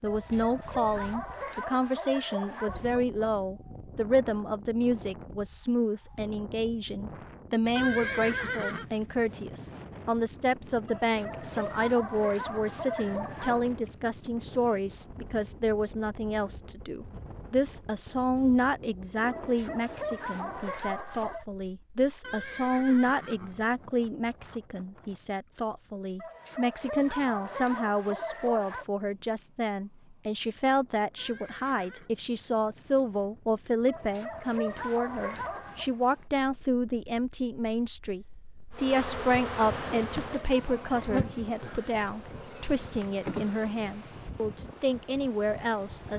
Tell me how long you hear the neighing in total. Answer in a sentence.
You can hear the neighing for 4 seconds altogether.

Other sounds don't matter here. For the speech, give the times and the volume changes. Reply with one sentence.
The speech can be heard from 0.0 to 46.1 s, at a steady volume.